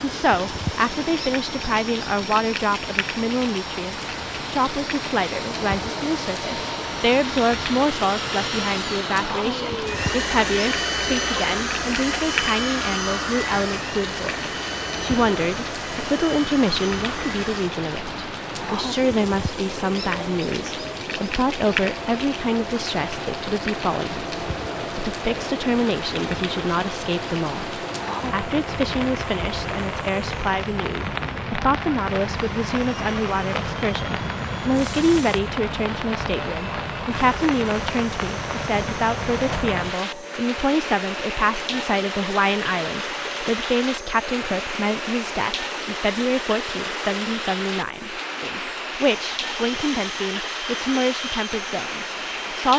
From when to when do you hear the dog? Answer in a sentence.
You can't hear the dog here.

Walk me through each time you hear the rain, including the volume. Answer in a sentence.
You can hear the rain from 0.0 to 52.7 s, at a steady volume.